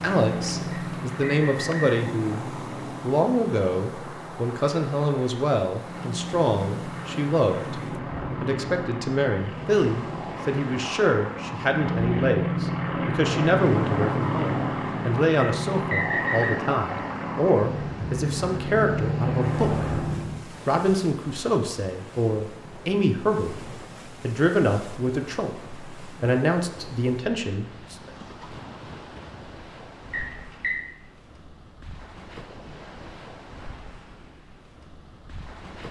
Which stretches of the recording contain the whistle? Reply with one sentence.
You can hear the whistle from 0.7 to 2.0 s, from 15.4 to 16.6 s and from 30.1 to 30.8 s.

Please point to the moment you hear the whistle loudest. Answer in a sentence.
The loudest moment of the whistle is at 16 seconds.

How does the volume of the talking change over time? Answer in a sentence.
The volume of the talking stays about the same.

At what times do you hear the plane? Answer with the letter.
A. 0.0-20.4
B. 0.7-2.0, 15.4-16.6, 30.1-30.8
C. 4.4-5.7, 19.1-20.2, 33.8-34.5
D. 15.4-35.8
A.